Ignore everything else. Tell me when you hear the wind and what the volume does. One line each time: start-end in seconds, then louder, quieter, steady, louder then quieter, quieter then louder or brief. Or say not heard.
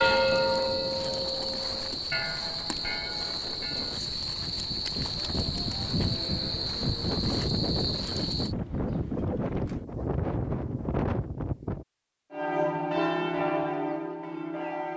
0.0-11.8 louder.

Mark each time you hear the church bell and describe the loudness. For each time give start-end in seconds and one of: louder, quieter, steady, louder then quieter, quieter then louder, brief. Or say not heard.
0.0-4.0 quieter
12.3-14.9 brief.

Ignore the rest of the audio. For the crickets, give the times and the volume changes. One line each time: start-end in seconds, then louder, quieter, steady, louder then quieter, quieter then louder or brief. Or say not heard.
0.0-8.6 steady.